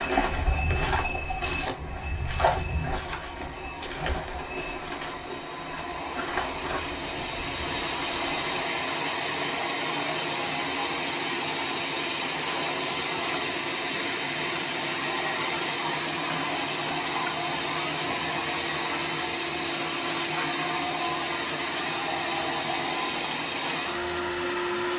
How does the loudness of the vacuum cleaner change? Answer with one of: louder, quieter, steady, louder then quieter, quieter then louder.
louder.